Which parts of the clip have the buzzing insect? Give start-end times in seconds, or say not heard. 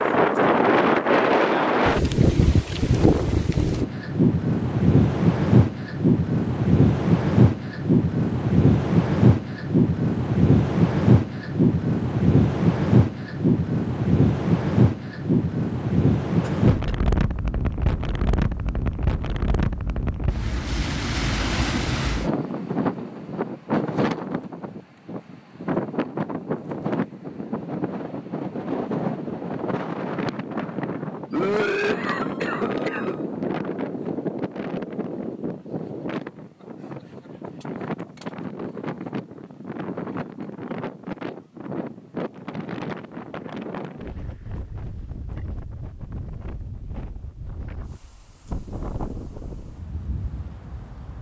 not heard.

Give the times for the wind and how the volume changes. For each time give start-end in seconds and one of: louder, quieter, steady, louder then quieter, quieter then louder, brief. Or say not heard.
0.0-51.1 quieter.